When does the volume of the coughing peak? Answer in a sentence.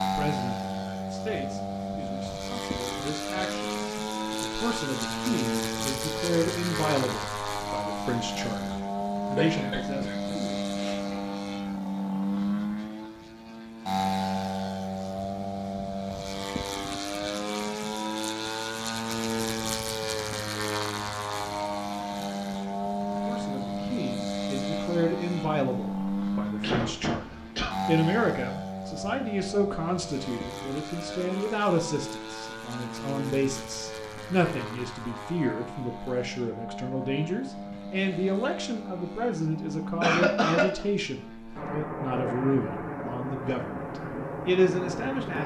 The loudest moment of the coughing is at 40 seconds.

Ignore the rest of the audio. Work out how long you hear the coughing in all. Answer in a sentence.
You can hear the coughing for 4 seconds altogether.